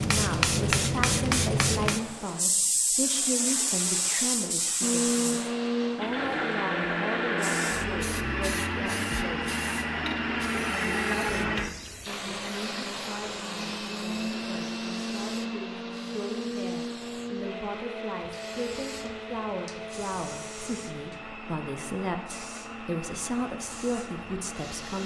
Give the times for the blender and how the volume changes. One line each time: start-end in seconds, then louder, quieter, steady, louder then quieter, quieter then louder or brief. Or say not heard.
4.8-25.0 quieter.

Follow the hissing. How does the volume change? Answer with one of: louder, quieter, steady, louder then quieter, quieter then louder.
quieter.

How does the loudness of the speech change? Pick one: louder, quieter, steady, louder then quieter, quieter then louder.
quieter then louder.